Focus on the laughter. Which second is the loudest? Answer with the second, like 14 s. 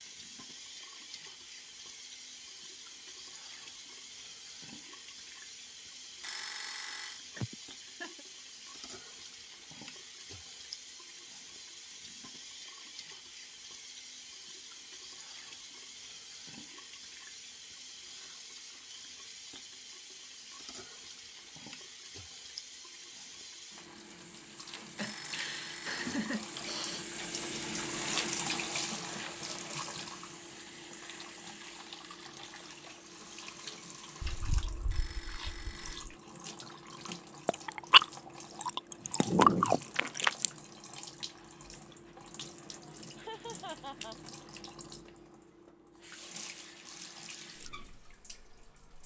26 s.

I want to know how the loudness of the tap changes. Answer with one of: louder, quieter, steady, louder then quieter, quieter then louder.
louder then quieter.